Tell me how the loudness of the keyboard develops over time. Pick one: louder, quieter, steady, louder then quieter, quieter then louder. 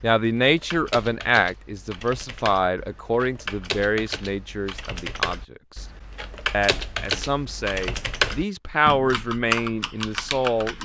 louder.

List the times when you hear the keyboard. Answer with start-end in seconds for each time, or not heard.
0.0-10.8.